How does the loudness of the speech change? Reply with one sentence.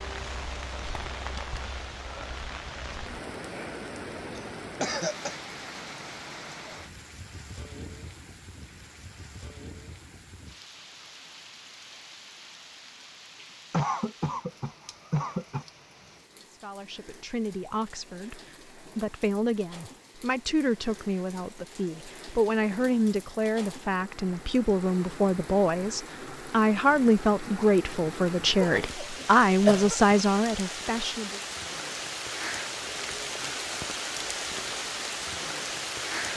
The volume of the speech goes up.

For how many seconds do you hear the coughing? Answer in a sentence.
The coughing can be heard for 4 seconds in total.